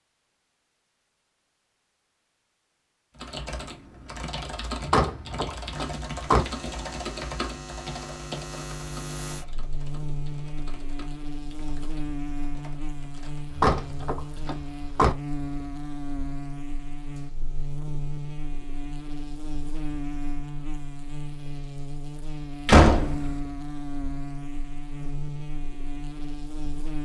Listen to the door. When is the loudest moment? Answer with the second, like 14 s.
23 s.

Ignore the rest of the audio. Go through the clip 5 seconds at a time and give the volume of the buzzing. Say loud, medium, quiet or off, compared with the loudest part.
off, loud, loud, loud, loud, loud.